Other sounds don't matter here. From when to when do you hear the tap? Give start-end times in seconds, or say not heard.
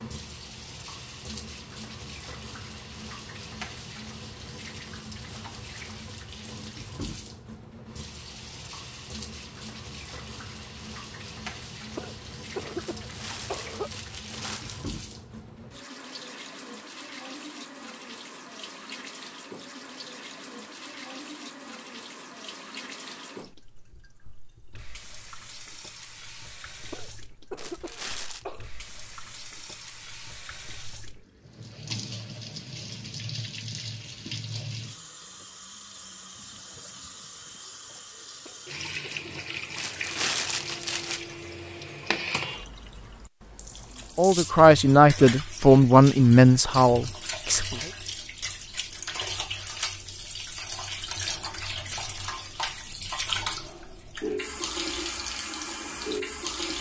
0.0-56.7.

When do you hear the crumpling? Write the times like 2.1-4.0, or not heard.
12.8-14.9, 27.6-28.4, 39.8-41.2.